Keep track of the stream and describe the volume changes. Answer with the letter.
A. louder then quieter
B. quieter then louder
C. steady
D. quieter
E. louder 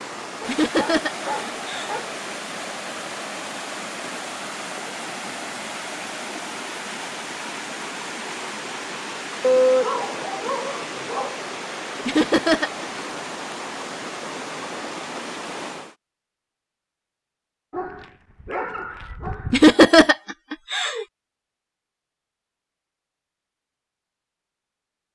C.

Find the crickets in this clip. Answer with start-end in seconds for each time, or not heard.
not heard.